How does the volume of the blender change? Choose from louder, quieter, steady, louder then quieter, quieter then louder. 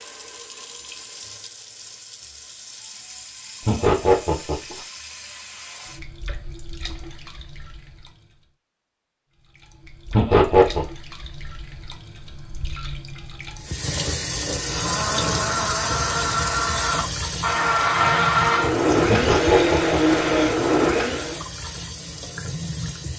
louder.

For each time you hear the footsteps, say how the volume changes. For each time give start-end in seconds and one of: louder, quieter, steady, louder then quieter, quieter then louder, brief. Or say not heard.
not heard.